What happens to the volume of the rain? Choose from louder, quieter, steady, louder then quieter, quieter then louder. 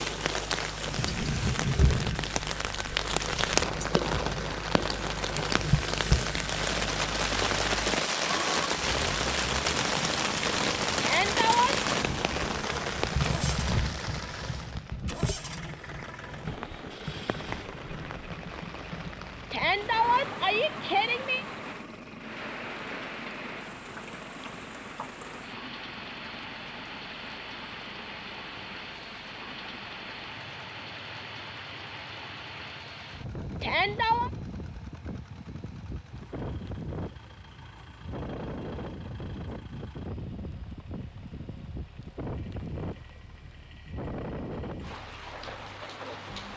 quieter.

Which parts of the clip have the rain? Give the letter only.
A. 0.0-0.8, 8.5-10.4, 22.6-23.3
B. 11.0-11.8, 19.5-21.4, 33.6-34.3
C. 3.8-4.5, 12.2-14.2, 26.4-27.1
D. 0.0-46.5
D.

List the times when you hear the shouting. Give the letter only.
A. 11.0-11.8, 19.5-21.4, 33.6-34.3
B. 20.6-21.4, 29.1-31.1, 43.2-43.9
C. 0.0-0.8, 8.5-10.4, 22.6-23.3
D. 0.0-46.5
A.